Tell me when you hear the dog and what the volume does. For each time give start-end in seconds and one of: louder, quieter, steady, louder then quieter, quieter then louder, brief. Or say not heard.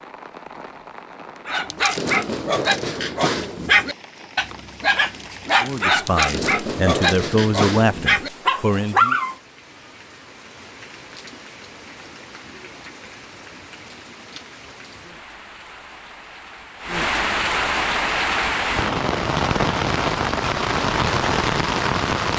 1.4-9.3 steady.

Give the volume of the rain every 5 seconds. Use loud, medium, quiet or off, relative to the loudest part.
quiet, quiet, quiet, loud, loud.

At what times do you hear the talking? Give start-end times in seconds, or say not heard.
5.6-9.2.